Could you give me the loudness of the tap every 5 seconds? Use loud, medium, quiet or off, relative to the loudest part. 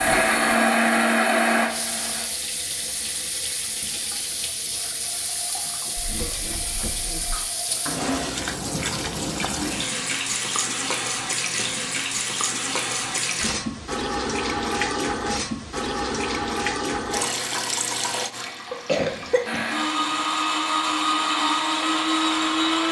medium, loud, loud, loud, quiet.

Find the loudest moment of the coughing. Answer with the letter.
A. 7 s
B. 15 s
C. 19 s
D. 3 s
C.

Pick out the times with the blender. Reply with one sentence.
You can hear the blender from 0.0 to 2.2 s and from 19.4 to 22.8 s.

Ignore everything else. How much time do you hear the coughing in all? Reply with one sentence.
You can hear the coughing for 3 seconds altogether.